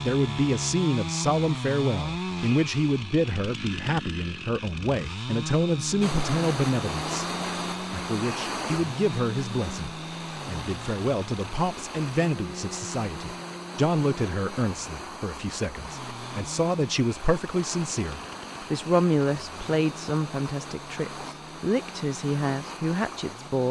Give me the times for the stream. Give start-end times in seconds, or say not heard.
6.0-23.6.